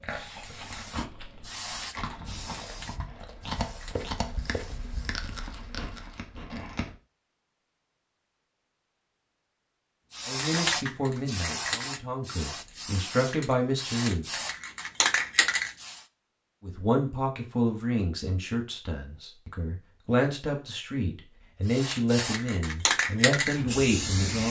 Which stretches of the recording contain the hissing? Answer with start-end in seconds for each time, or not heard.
0.1-5.2, 10.1-16.1, 21.6-24.4.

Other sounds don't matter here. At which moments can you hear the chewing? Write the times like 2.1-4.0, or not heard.
0.0-7.0.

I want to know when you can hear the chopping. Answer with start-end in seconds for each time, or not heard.
not heard.